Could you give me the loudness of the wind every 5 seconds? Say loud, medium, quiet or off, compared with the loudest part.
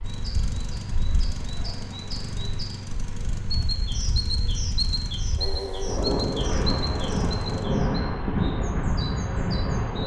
quiet, loud.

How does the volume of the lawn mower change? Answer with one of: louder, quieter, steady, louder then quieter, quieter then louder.
steady.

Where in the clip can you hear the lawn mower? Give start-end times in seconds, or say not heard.
0.0-7.7.